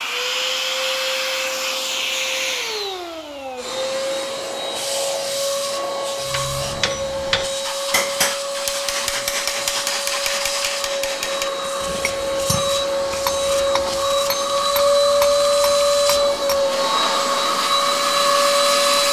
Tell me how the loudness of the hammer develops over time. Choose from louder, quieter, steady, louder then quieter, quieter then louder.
quieter.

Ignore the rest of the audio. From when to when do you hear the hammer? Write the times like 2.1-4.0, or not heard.
6.2-16.6.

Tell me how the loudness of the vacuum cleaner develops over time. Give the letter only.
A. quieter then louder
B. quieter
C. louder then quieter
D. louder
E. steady
D.